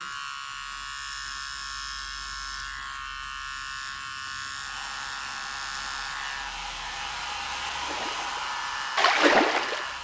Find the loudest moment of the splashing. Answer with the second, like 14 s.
9 s.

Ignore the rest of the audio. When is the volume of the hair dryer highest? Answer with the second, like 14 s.
8 s.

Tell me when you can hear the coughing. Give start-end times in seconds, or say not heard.
not heard.